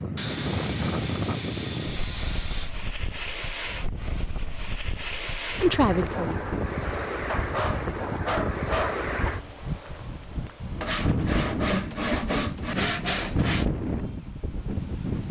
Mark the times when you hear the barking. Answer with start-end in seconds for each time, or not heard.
7.2-9.3.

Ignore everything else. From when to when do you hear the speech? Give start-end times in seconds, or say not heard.
5.6-6.5.